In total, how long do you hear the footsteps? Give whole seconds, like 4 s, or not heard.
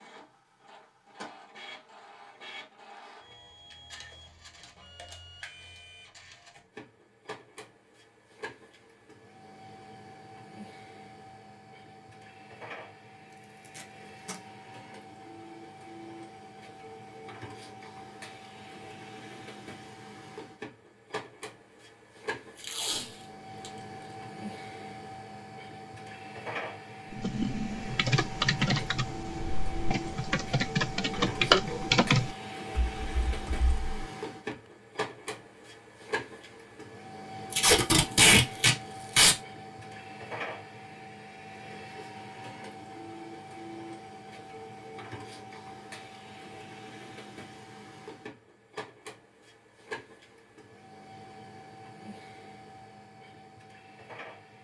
not heard.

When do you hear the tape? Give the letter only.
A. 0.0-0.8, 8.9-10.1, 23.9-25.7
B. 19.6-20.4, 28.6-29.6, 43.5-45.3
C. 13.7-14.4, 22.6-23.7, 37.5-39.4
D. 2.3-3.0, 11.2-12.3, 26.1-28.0
C.